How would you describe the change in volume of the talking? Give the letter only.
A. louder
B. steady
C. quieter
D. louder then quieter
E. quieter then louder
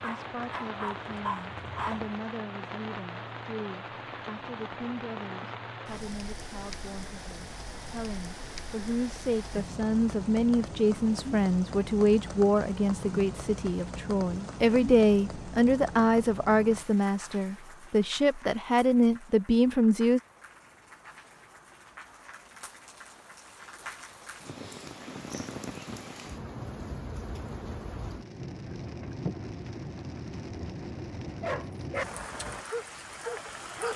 A.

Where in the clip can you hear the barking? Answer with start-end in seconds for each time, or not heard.
0.0-2.1, 31.4-33.9.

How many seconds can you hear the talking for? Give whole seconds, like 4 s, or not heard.
20 s.